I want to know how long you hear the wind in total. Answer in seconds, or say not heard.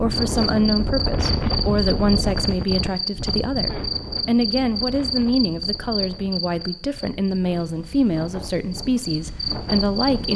10 s.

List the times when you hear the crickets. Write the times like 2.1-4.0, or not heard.
0.1-10.3.